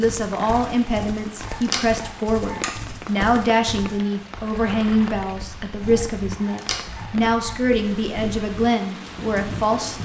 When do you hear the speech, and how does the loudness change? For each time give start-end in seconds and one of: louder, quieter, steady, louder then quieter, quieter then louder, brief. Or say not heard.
0.0-10.0 steady.